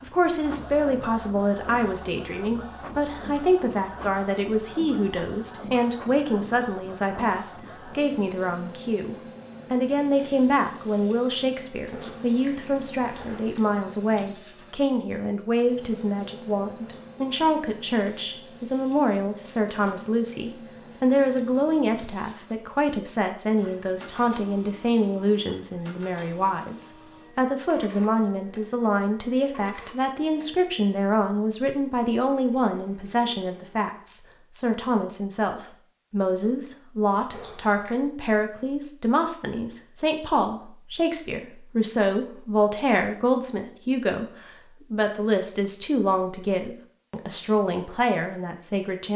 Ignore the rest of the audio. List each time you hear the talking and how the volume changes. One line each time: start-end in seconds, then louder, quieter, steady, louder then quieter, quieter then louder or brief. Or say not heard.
0.0-49.1 steady.